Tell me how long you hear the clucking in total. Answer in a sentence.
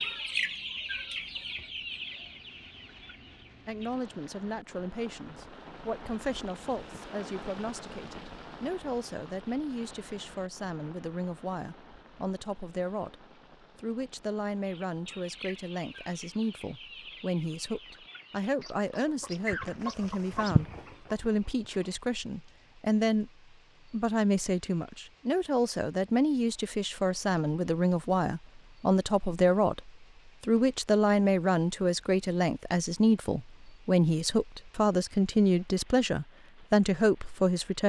The clucking can be heard for 11 seconds in total.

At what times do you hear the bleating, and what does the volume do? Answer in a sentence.
The bleating can't be heard in this clip.